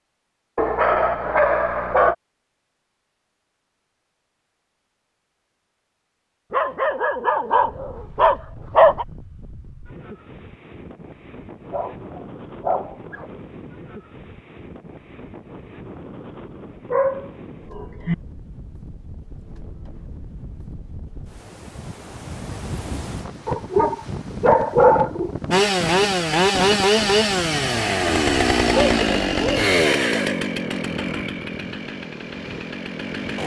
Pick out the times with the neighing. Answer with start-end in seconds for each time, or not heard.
not heard.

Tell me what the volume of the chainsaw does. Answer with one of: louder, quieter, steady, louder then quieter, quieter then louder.
quieter.